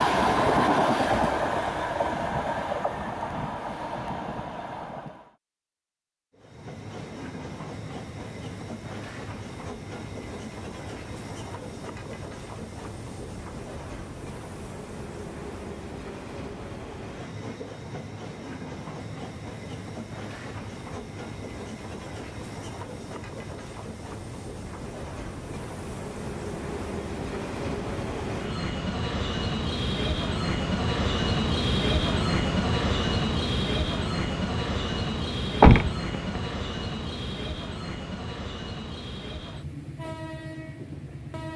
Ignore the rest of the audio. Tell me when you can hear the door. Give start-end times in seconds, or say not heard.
35.5-36.1.